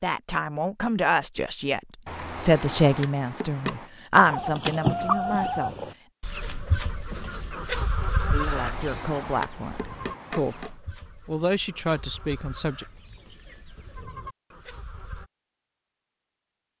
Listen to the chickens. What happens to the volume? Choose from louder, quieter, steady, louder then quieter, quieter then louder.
quieter.